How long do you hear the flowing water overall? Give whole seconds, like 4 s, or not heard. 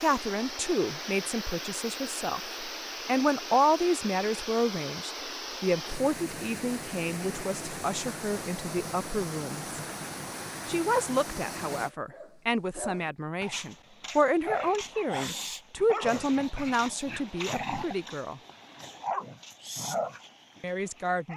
12 s.